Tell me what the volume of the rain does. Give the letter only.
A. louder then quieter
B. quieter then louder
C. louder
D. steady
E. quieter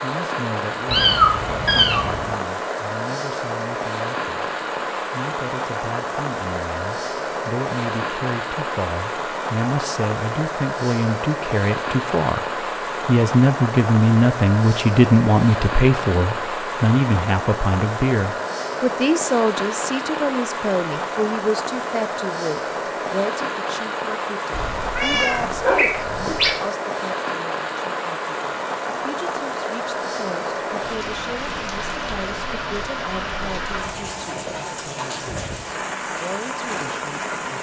D.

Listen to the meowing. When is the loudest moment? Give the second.
1 s.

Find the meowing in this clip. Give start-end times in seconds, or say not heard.
0.8-2.4, 24.5-26.5.